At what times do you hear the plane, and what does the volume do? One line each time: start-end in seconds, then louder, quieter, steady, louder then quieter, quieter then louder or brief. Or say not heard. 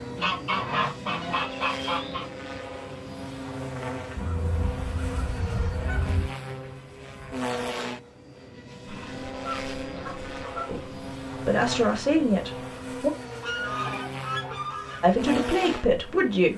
0.0-16.5 steady.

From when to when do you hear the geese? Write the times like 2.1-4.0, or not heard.
0.1-2.2, 4.2-6.3, 8.8-10.7, 13.4-15.1.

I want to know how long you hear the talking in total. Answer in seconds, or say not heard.
4 s.